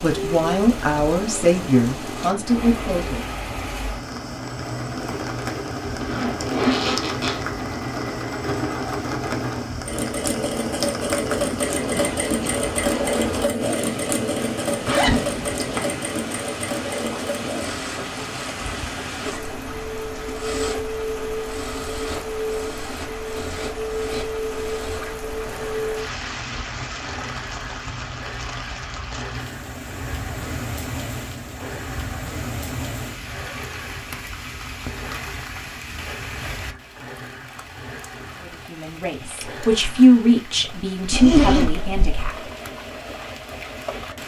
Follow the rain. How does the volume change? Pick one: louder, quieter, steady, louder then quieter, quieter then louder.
quieter.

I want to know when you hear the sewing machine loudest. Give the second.
13 s.